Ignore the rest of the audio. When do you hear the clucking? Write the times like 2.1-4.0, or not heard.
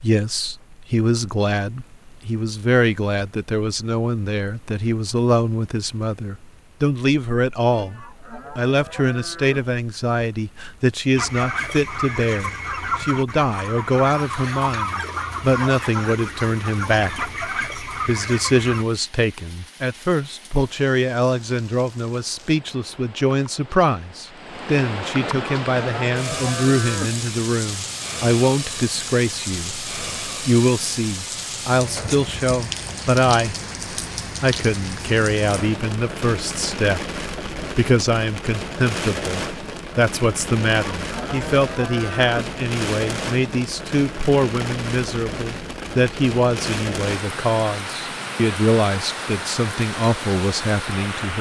11.2-18.9.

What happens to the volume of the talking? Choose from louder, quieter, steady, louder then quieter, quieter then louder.
steady.